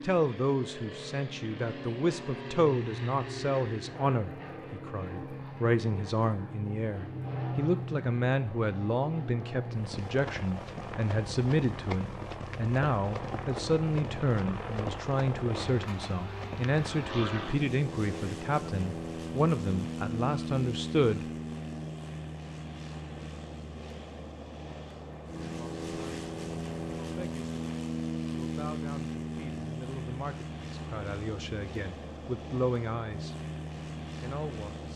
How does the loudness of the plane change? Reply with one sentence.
The volume of the plane stays about the same.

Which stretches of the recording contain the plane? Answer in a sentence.
The plane can be heard from 0.0 to 34.9 s.